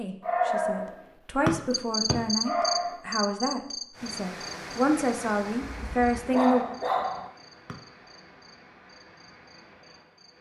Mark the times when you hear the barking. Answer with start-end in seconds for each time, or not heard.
0.2-3.0, 5.7-7.3.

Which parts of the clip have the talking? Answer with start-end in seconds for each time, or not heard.
0.0-6.7.